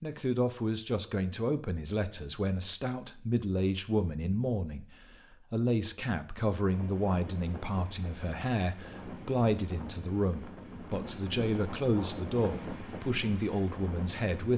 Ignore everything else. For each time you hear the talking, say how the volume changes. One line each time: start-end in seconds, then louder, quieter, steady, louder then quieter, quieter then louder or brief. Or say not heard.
0.0-14.5 steady.